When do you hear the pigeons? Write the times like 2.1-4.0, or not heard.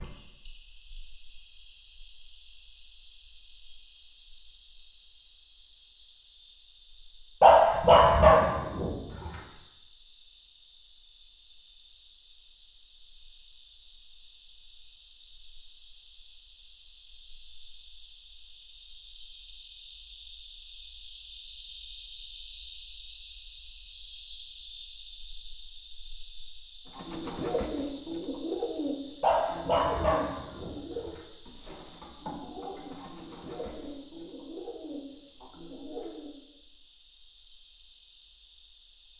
26.9-36.3.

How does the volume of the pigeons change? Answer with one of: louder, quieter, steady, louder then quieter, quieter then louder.
quieter.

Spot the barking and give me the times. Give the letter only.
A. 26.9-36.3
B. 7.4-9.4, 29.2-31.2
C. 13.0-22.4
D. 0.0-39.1
B.